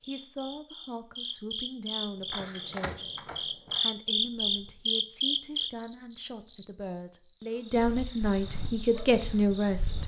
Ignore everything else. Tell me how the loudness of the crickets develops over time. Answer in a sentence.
The loudness of the crickets goes up, then down.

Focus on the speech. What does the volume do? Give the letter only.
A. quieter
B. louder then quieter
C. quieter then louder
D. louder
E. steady
D.